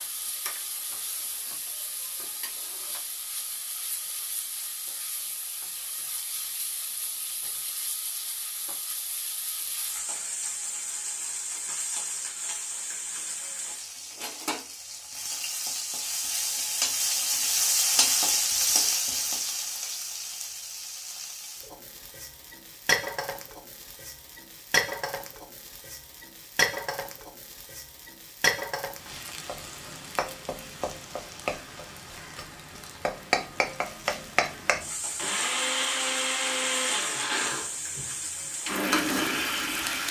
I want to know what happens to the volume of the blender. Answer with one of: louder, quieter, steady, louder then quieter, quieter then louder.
quieter then louder.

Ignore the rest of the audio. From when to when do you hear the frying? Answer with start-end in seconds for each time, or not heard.
0.0-40.0.